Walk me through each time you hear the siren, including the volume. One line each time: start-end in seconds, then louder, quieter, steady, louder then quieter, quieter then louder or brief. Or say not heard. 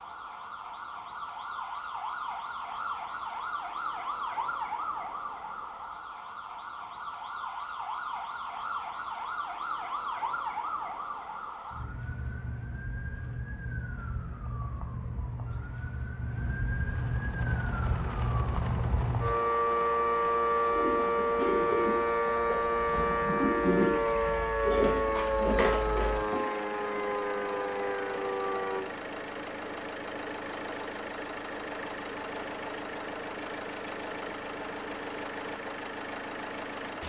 0.0-28.9 louder.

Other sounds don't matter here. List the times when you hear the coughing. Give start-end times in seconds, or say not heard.
not heard.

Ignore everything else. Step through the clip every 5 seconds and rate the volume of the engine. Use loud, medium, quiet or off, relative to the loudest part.
off, off, off, medium, medium, loud, loud, loud.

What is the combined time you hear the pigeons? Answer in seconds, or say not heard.
6 s.